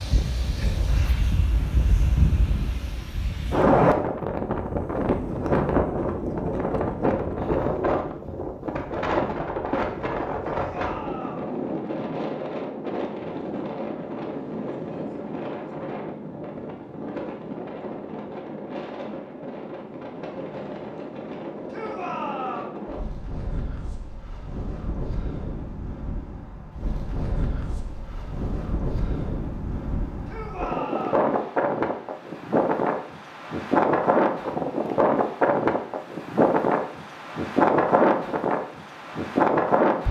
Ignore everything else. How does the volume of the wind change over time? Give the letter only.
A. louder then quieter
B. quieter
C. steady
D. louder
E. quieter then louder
E.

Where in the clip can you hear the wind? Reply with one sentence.
The wind can be heard from 0.0 to 40.0 s.